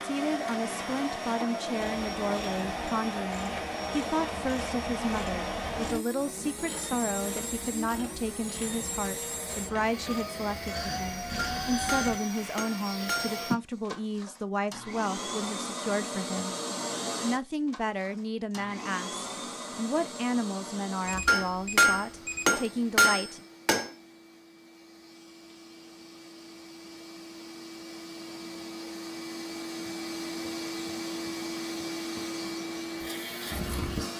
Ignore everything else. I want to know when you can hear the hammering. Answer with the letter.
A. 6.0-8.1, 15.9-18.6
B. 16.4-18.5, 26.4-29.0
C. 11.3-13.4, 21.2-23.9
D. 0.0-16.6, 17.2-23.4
C.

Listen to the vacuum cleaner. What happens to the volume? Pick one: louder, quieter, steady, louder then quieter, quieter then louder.
quieter then louder.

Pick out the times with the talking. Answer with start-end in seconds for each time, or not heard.
0.0-16.6, 17.2-23.4.